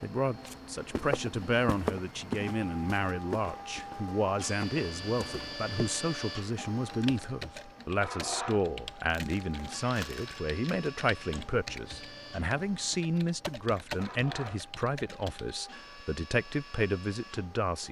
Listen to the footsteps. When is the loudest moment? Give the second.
2 s.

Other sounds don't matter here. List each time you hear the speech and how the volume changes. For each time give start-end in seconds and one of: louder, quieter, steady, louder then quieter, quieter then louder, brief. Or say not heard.
0.0-17.8 steady.